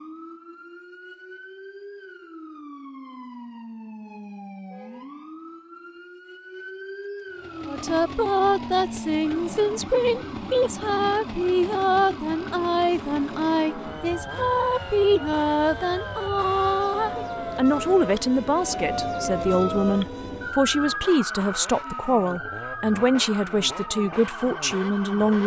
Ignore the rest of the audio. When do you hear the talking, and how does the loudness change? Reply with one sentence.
The talking can be heard from 7.7 to 25.4 s, at a steady volume.